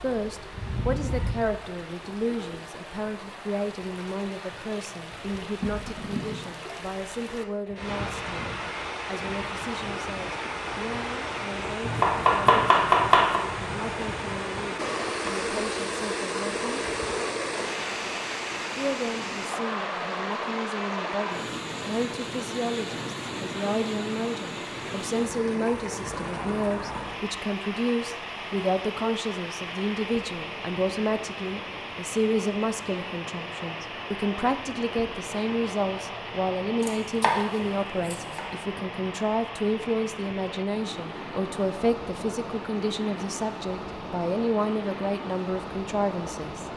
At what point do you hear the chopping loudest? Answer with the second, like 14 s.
13 s.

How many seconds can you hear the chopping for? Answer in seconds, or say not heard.
3 s.